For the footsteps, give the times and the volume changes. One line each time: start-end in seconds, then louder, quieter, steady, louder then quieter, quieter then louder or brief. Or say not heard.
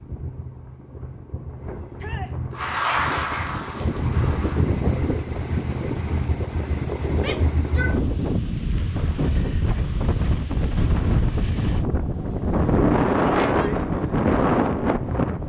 not heard.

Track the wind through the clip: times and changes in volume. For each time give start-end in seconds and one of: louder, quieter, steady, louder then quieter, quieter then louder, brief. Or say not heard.
0.0-15.4 louder.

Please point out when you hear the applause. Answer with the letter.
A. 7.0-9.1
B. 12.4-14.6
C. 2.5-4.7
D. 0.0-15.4
C.